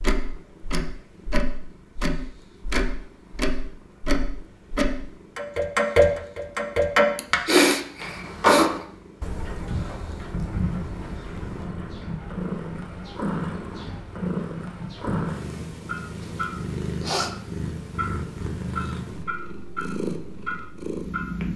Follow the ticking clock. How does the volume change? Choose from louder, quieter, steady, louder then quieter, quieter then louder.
quieter.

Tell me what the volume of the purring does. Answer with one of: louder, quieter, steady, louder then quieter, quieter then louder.
louder.